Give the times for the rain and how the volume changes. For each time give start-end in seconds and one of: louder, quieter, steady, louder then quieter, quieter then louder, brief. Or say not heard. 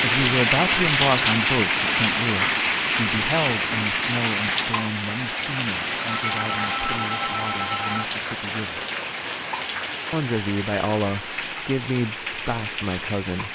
0.0-13.5 quieter.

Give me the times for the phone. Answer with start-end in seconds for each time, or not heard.
6.2-8.1.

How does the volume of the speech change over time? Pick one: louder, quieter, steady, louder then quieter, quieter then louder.
quieter then louder.